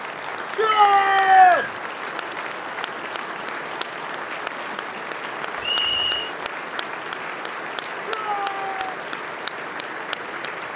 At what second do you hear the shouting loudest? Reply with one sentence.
The loudest moment of the shouting is at 1 second.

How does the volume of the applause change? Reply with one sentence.
The loudness of the applause stays about the same.